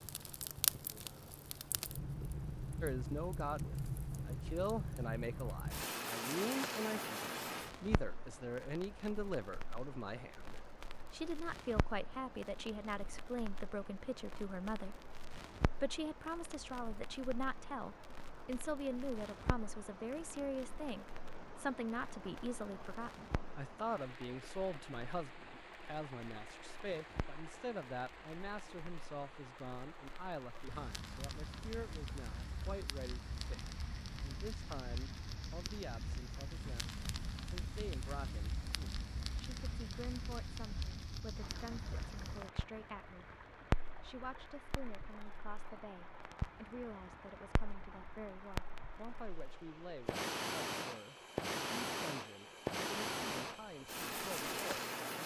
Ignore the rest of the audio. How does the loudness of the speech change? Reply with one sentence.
The loudness of the speech goes down.